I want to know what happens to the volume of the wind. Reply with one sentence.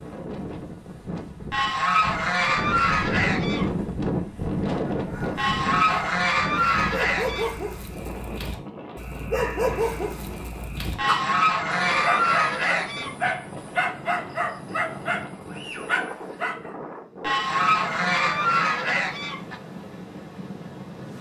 The loudness of the wind goes down.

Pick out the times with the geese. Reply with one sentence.
You can hear the geese from 1.5 to 3.6 s, from 5.3 to 7.5 s, from 10.9 to 13.3 s and from 17.2 to 19.6 s.